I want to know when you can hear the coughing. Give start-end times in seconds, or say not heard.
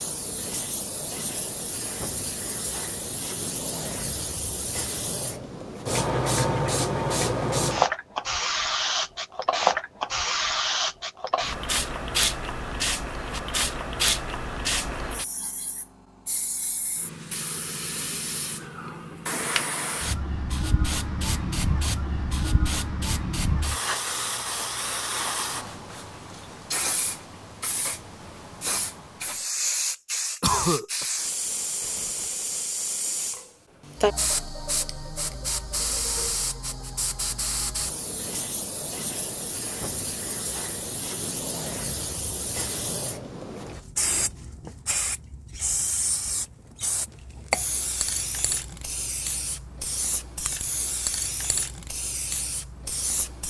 30.4-31.1.